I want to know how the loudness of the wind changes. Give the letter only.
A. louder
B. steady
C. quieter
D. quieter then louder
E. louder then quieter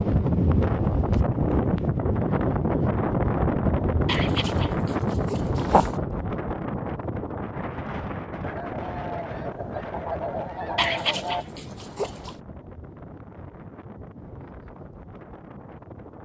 C.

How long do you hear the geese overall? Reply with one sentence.
The geese can be heard for 3 seconds in total.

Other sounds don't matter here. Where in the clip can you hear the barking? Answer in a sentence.
You can hear the barking from 4.0 to 6.0 s and from 10.8 to 12.3 s.